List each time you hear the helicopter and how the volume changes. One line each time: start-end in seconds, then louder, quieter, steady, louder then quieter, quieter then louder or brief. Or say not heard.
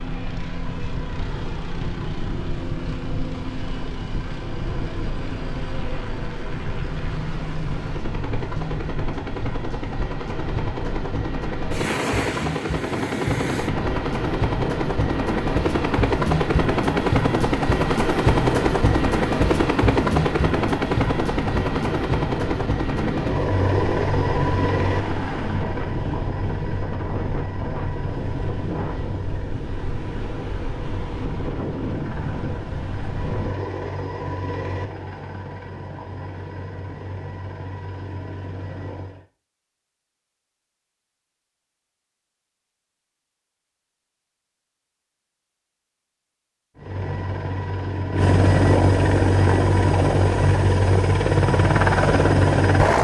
0.0-39.2 louder then quieter
46.8-52.9 louder.